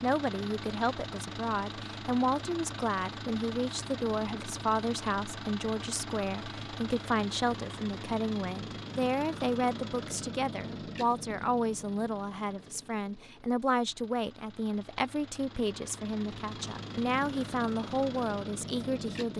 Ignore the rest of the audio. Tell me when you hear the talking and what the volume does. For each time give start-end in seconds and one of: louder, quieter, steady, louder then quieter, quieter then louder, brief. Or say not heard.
0.0-19.3 steady.